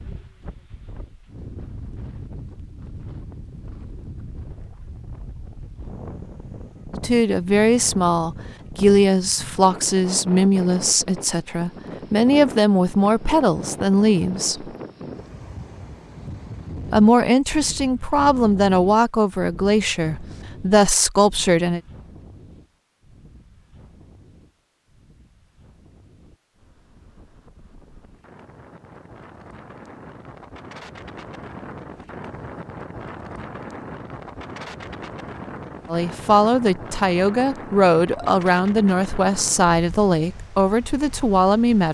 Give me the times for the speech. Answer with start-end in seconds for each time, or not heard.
7.0-14.7, 16.9-21.8, 35.9-41.9.